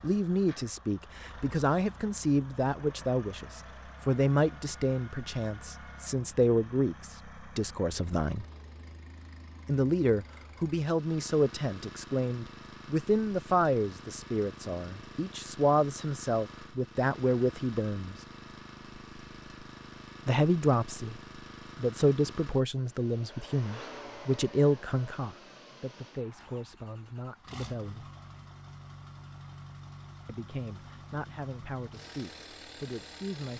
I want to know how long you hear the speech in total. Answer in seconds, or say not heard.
28 s.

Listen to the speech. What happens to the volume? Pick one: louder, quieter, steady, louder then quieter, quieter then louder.
quieter.